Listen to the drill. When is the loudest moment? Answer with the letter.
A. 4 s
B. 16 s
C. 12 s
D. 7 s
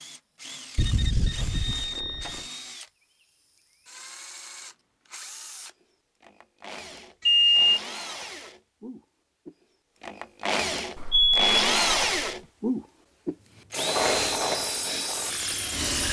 C.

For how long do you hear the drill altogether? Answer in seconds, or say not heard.
16 s.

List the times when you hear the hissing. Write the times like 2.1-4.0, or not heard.
13.9-16.0.